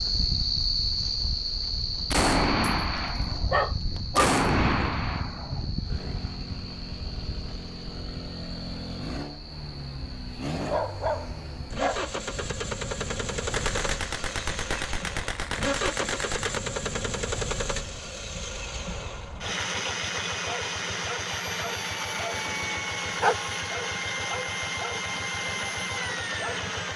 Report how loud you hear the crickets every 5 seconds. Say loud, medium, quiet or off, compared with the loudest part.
loud, medium, quiet, off, off, off.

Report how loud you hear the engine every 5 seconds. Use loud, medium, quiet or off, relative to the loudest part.
quiet, medium, loud, loud, loud, loud.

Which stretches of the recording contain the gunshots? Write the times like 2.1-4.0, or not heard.
2.1-5.7, 13.5-16.6.